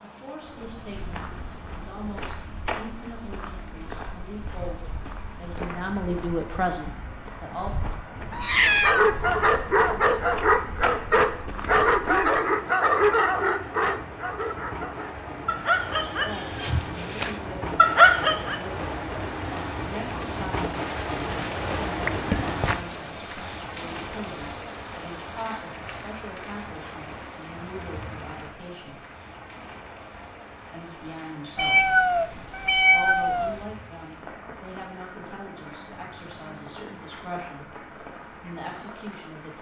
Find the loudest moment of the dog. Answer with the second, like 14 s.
18 s.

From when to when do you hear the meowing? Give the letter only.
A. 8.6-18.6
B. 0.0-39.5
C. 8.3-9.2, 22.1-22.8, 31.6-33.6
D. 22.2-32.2
C.